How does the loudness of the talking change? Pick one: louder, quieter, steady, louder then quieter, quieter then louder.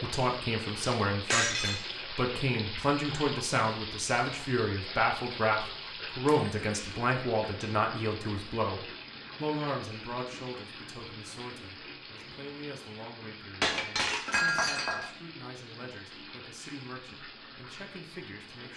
quieter.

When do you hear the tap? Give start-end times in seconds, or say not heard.
0.0-18.7.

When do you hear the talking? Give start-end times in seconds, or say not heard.
0.0-18.7.